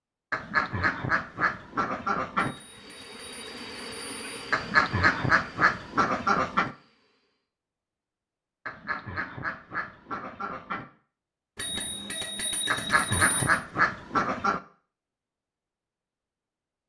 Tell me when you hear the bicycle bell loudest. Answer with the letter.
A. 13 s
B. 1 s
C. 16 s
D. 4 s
A.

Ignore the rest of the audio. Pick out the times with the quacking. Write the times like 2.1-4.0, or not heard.
0.3-2.5, 4.5-6.8, 8.7-10.8, 12.7-14.6.